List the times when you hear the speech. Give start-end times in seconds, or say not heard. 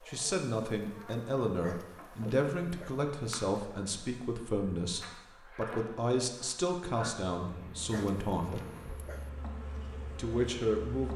0.1-8.6, 10.2-11.1.